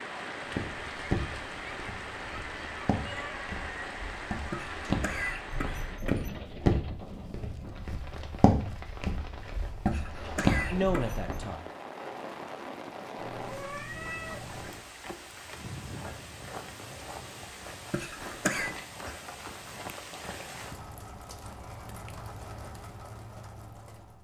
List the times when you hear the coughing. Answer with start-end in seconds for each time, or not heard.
4.5-6.3, 9.8-11.4, 17.9-18.7.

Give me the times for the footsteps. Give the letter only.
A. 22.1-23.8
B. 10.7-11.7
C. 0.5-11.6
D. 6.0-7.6
C.